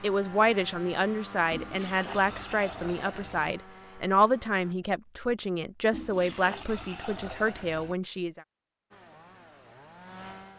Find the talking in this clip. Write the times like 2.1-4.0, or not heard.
0.0-8.4.